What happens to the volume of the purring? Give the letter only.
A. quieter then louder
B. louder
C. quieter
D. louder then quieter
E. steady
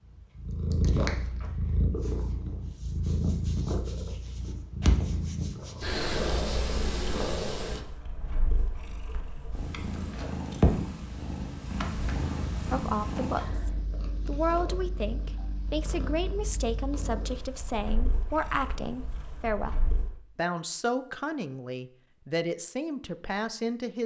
C.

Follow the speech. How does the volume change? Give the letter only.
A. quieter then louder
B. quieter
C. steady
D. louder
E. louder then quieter
C.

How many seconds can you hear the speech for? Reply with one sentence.
You can hear the speech for 11 seconds altogether.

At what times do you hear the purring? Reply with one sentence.
The purring can be heard from 0.1 to 20.1 s.